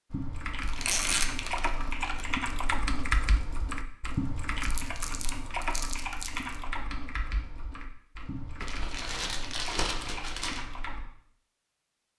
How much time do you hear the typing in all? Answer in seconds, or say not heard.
11 s.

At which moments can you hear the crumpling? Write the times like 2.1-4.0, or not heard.
0.6-2.2, 4.6-6.5, 8.6-10.7.